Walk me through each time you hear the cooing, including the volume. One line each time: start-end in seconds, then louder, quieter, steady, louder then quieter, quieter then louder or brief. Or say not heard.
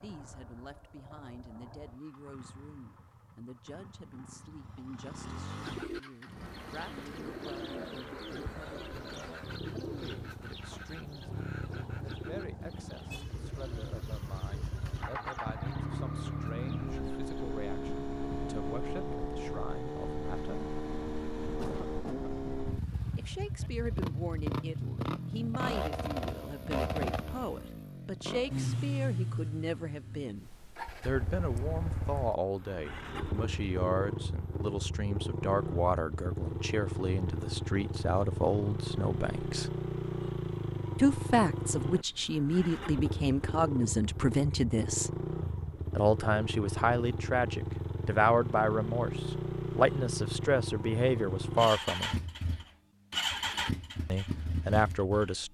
5.6-17.3 quieter.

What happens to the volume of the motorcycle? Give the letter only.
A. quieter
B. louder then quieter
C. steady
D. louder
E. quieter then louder
D.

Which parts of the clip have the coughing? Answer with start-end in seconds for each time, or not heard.
21.6-22.3.